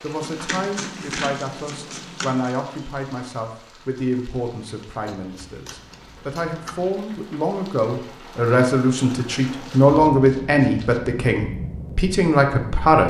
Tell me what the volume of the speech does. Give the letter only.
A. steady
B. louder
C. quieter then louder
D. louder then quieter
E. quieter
B.